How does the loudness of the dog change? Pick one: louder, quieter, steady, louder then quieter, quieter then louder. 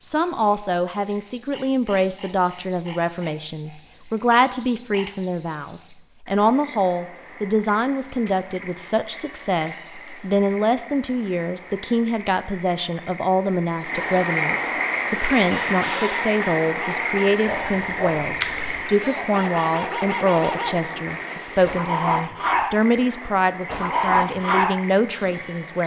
louder.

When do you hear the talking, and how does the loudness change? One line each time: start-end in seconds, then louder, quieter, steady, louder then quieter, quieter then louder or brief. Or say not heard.
0.0-25.8 steady.